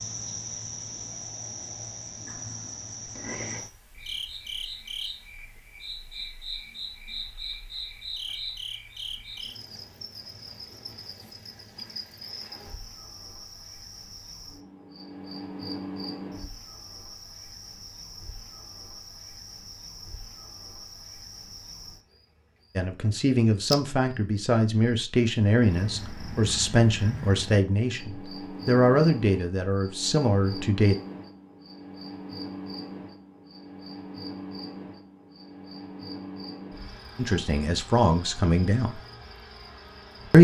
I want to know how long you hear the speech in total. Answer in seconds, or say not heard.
10 s.